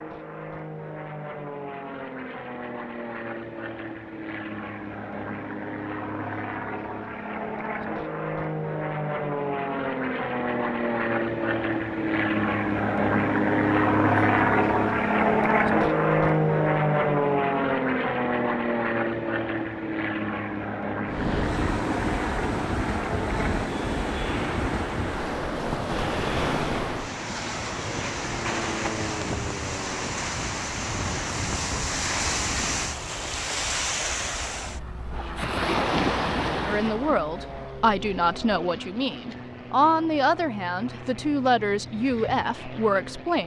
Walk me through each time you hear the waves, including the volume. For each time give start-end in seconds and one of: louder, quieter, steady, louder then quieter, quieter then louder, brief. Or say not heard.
21.1-43.4 quieter.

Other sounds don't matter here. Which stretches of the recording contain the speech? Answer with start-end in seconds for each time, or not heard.
36.6-43.4.